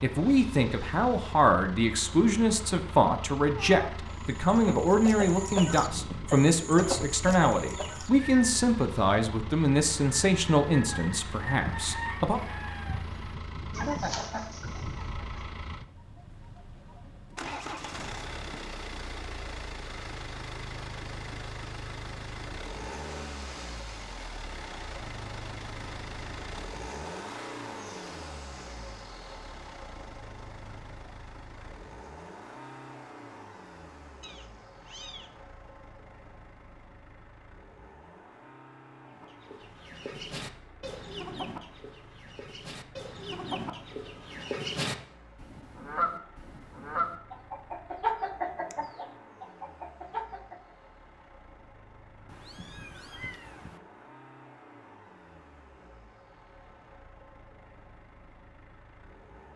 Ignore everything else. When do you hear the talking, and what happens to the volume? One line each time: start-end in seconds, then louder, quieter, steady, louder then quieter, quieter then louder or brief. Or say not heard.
0.0-12.4 steady.